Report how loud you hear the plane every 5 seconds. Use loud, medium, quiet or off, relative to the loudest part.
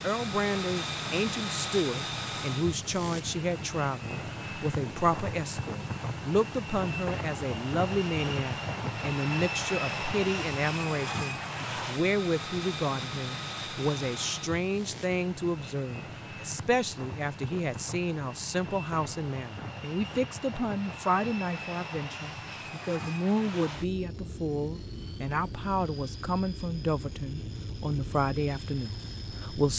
loud, loud, loud, medium, medium, medium.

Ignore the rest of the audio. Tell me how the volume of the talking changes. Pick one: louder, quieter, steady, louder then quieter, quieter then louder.
steady.